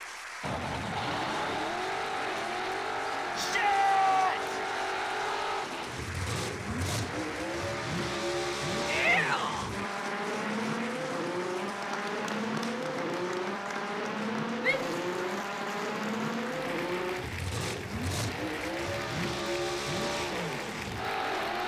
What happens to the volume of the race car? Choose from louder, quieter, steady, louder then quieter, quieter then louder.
steady.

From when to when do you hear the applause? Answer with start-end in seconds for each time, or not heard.
0.0-21.6.